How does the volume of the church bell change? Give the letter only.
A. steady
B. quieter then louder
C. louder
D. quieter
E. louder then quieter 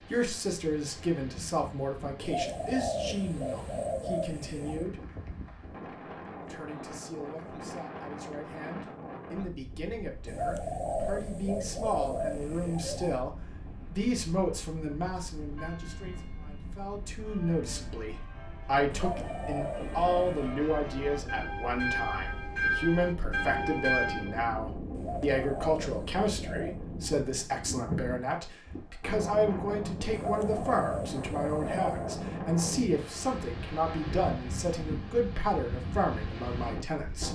C.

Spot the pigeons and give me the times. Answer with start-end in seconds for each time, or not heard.
2.2-4.9, 10.2-13.2, 18.9-20.6, 24.9-26.8, 30.1-32.2.